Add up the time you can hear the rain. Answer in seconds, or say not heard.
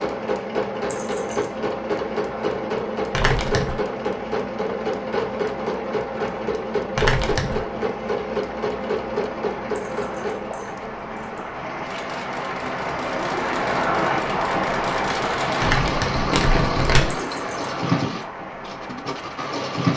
20 s.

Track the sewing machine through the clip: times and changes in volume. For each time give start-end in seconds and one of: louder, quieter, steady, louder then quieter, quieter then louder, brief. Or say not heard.
0.0-19.9 quieter then louder.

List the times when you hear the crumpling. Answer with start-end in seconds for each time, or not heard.
3.1-3.8, 7.0-7.7, 15.6-17.2.